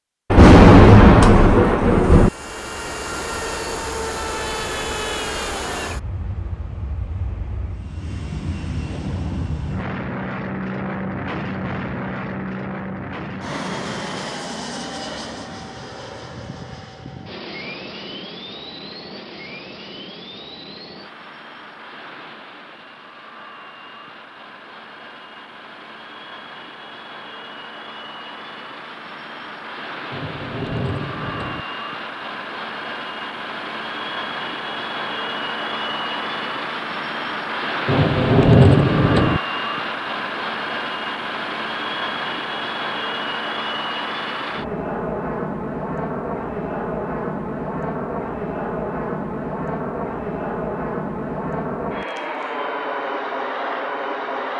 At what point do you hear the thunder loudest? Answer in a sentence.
The loudest moment of the thunder is at 1 second.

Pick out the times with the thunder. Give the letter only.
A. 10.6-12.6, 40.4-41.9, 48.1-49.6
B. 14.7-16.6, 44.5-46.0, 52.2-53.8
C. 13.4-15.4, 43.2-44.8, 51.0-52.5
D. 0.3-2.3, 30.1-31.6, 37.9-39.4
D.